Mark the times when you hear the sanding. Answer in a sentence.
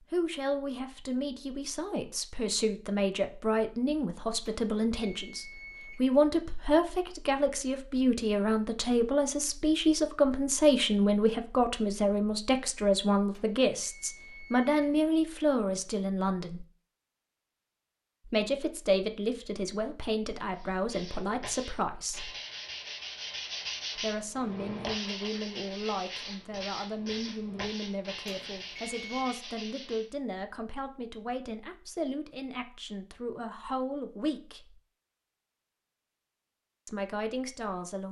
The sanding can be heard from 20.5 to 30.1 s.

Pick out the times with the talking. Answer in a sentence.
You can hear the talking from 0.1 to 16.6 s, from 18.2 to 22.3 s, from 23.9 to 34.8 s and from 36.9 to 38.0 s.